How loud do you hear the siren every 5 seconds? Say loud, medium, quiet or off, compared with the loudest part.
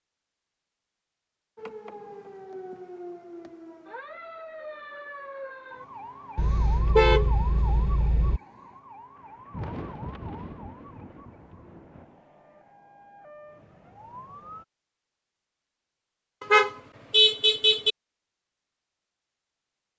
loud, loud, medium, off.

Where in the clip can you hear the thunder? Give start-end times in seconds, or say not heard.
9.2-12.2.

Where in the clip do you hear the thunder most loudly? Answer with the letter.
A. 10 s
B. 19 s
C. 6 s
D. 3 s
A.